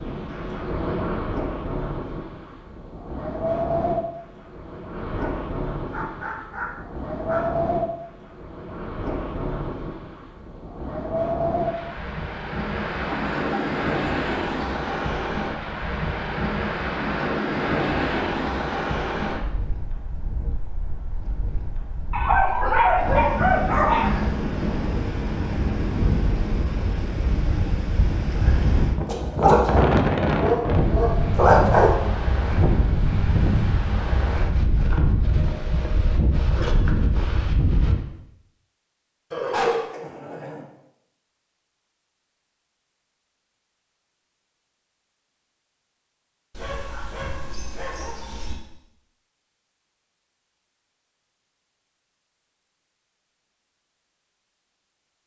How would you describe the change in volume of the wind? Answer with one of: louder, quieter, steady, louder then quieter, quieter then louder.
steady.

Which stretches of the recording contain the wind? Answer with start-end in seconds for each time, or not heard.
0.0-38.0.